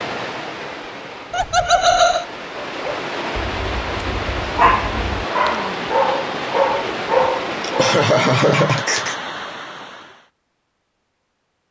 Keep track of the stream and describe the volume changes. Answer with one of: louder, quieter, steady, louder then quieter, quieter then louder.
louder.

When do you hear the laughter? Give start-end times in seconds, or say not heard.
1.3-2.2, 7.2-9.2.